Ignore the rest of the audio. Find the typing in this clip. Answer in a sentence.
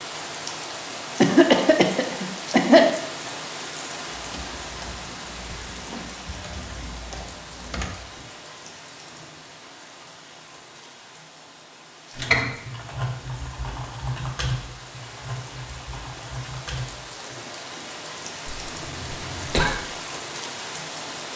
The typing can be heard from 4.2 to 8.2 s and from 12.2 to 17.4 s.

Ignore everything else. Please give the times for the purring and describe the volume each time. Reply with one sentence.
The purring can't be heard in this clip.